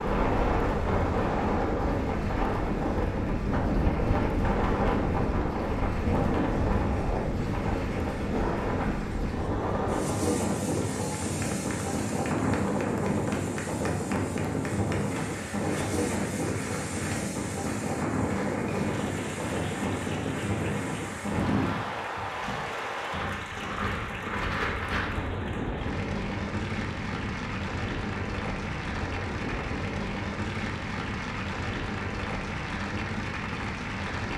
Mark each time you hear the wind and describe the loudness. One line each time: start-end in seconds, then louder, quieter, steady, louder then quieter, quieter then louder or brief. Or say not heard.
0.0-34.3 quieter.